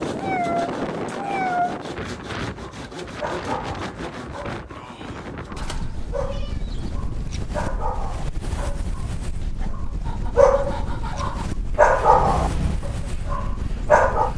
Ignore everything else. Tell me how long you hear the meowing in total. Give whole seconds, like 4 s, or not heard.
4 s.